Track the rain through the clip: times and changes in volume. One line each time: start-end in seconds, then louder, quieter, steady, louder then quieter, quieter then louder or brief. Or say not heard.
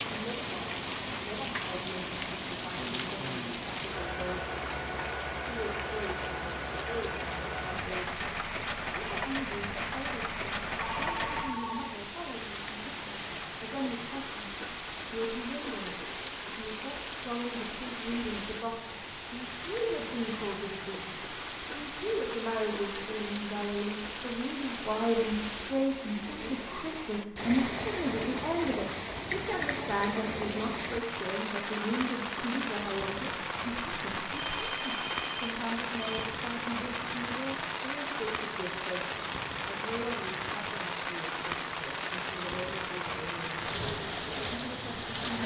0.0-45.4 steady.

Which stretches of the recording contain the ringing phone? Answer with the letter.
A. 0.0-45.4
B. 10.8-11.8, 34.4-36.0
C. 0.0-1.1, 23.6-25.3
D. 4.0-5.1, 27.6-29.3
B.